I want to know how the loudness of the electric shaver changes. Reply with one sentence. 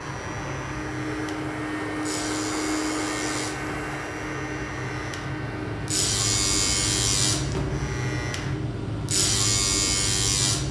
The loudness of the electric shaver goes up.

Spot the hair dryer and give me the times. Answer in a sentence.
The hair dryer can be heard from 0.0 to 8.6 s.